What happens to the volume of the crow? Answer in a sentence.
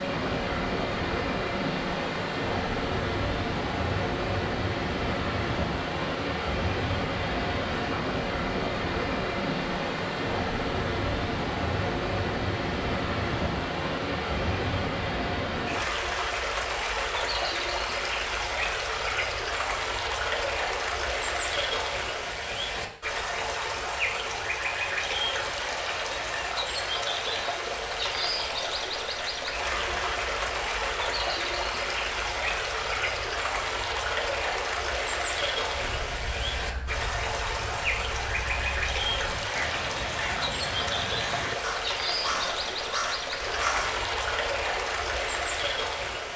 The volume of the crow goes up.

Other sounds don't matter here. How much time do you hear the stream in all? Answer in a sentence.
The stream can be heard for 46 seconds in total.